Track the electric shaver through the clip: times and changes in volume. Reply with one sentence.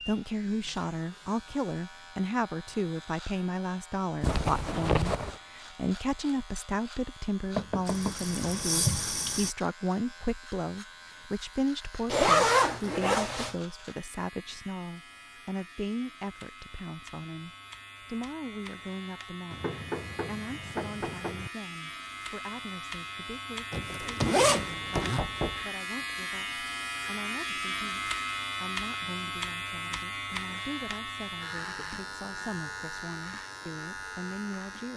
You can hear the electric shaver from 0.0 to 34.9 s, getting louder.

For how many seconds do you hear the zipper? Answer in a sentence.
The zipper can be heard for 4 seconds in total.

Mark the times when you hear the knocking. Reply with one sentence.
You can hear the knocking from 7.5 to 8.2 s, from 19.5 to 21.5 s and from 24.9 to 25.6 s.